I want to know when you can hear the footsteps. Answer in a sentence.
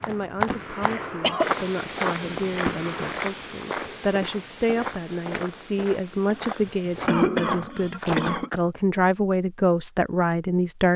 You can hear the footsteps from 0.0 to 8.8 s.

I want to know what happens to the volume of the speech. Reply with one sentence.
The volume of the speech goes up.